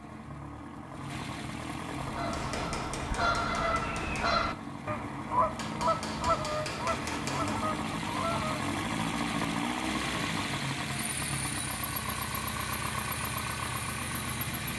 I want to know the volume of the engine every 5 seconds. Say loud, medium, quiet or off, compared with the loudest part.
medium, loud, loud.